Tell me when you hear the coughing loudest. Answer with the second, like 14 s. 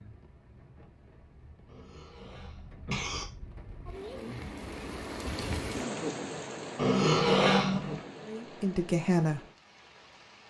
7 s.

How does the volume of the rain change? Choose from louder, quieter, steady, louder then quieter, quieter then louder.
louder then quieter.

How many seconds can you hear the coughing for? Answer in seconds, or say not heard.
3 s.